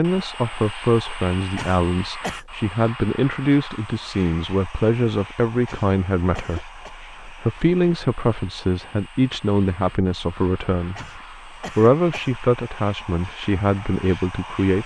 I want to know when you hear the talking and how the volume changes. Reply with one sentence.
The talking can be heard from 0.0 to 14.8 s, at a steady volume.